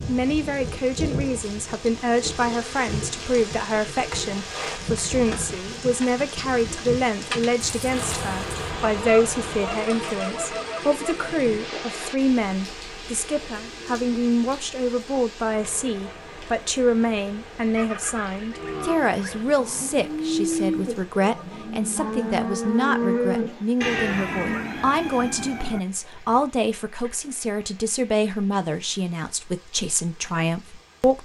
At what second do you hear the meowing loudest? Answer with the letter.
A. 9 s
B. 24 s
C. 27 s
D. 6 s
B.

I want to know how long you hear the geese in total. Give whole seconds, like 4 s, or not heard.
4 s.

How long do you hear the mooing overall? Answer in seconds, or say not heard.
6 s.